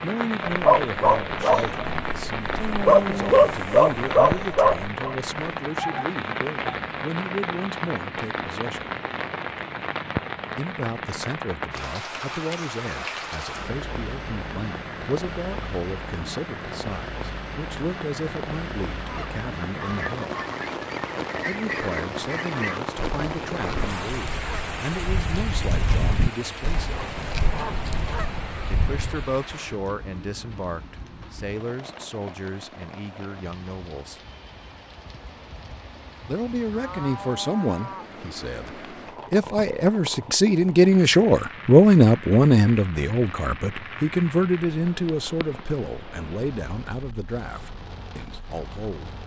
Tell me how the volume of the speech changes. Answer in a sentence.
The volume of the speech goes up.